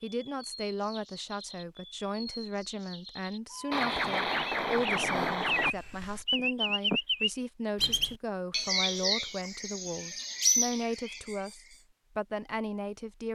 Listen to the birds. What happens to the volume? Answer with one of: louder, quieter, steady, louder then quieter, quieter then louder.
louder.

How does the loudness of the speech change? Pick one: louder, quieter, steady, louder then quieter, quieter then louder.
steady.